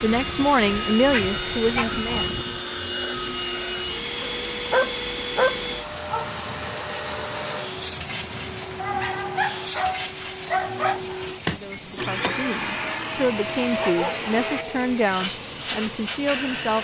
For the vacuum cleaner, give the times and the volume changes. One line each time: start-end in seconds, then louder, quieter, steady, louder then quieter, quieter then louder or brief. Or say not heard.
0.0-16.8 steady.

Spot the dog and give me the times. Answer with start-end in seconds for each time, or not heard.
1.1-2.2, 4.2-5.6, 8.8-11.0, 13.8-15.0.